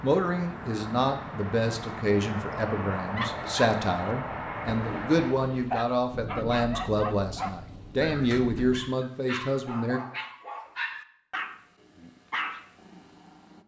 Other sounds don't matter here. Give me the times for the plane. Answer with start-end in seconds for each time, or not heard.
0.0-5.3.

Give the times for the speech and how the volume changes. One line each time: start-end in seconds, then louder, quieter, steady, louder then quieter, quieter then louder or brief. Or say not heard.
0.0-10.0 steady.